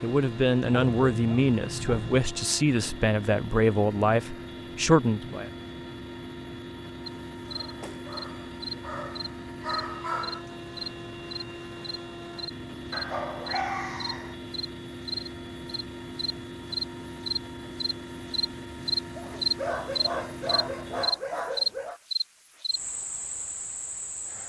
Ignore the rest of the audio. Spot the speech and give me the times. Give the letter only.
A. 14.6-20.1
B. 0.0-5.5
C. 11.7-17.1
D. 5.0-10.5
B.